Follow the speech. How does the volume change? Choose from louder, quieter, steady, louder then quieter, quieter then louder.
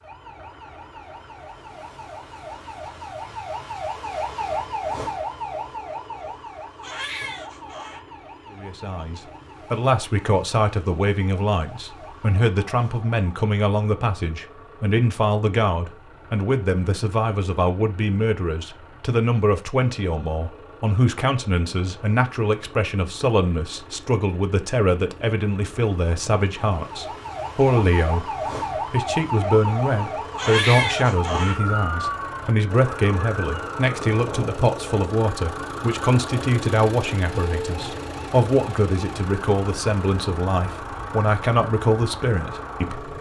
steady.